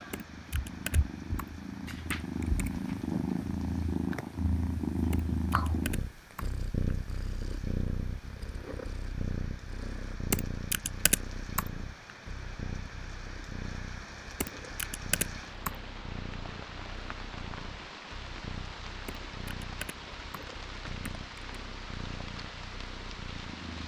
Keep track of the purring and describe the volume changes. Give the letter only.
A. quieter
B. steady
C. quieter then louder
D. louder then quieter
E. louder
A.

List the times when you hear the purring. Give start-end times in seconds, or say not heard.
0.0-23.8.